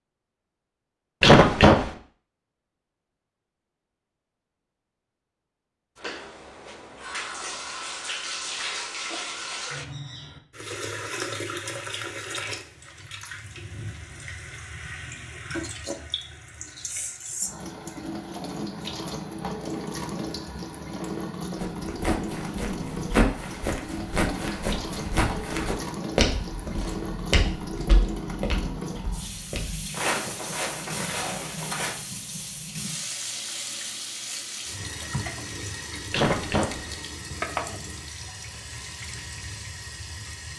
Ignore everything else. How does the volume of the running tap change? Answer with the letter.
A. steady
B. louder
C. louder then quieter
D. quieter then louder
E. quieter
A.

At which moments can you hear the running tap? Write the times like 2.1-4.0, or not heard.
6.0-40.5.